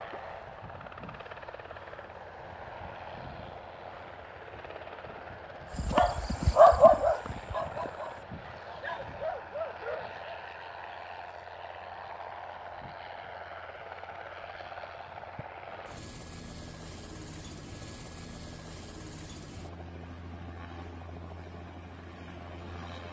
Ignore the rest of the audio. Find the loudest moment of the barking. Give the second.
7 s.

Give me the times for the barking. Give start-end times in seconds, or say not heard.
5.8-10.3.